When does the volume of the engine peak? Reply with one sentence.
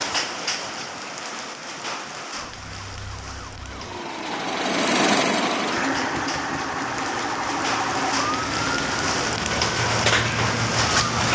The loudest moment of the engine is at 5 seconds.